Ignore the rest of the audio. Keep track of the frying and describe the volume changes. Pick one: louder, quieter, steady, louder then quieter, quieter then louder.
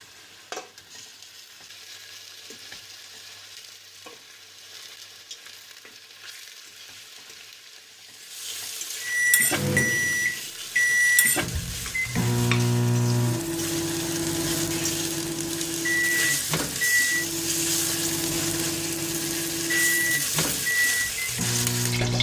louder.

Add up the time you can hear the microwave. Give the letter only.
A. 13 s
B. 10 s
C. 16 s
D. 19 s
A.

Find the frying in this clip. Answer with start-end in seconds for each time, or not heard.
0.0-22.1.